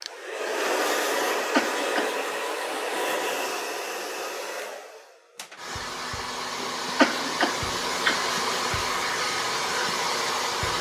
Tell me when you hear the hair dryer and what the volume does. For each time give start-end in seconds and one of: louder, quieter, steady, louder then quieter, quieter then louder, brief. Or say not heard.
0.0-10.7 quieter then louder.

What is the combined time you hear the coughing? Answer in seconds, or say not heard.
3 s.